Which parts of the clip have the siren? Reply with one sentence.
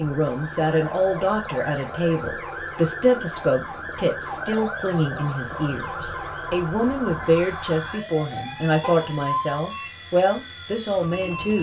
The siren can be heard from 0.0 to 11.5 s.